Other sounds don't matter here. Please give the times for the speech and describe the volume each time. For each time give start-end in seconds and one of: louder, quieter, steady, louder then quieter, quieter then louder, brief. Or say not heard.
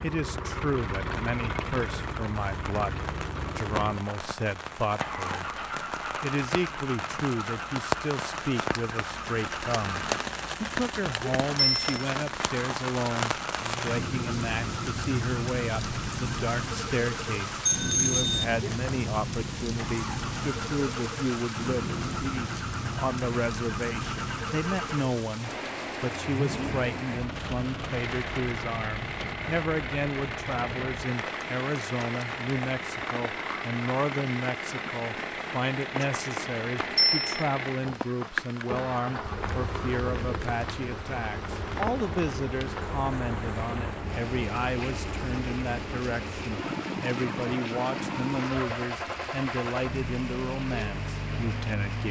0.0-52.0 steady.